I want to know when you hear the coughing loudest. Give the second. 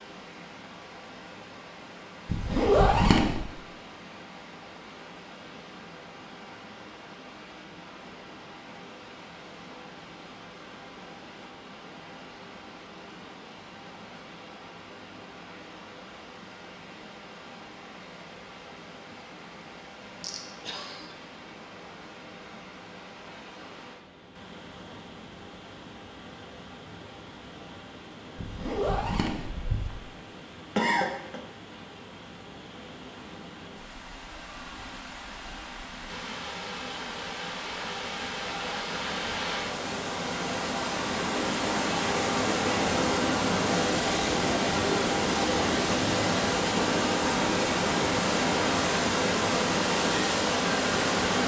31 s.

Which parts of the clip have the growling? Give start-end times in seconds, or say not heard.
not heard.